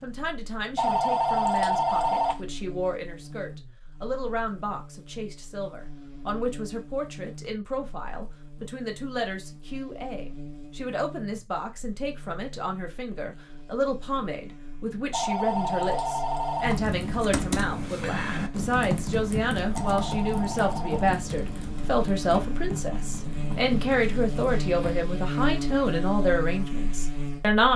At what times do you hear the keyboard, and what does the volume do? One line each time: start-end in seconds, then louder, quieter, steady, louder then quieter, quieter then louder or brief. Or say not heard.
16.6-24.9 quieter.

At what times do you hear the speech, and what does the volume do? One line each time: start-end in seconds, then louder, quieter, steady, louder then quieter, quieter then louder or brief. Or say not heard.
0.0-27.7 louder.